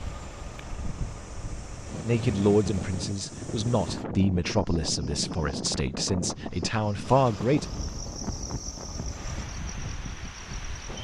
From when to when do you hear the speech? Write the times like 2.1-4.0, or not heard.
2.0-7.7.